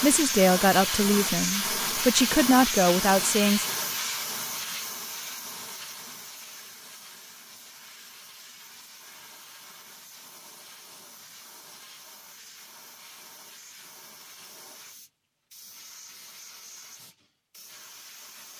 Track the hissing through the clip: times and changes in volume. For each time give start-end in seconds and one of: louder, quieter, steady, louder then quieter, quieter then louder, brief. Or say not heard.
0.0-18.5 quieter.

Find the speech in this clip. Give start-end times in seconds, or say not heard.
0.0-3.6.